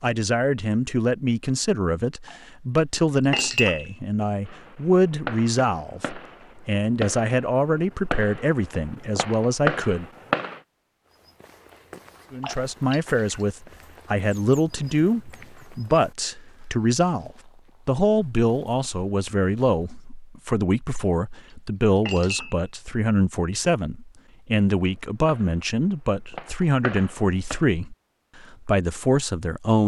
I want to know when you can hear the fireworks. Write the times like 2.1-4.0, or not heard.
4.5-10.6, 24.8-27.6.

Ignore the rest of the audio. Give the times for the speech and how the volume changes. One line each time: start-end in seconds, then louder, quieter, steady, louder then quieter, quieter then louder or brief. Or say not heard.
0.0-10.1 steady
12.3-29.8 steady.